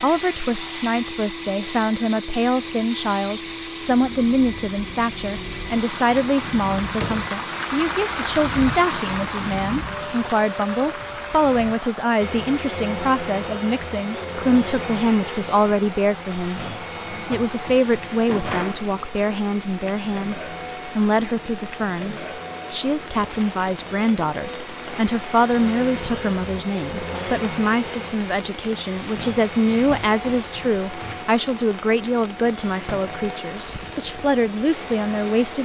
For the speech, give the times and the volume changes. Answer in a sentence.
You can hear the speech from 0.0 to 35.5 s, at a steady volume.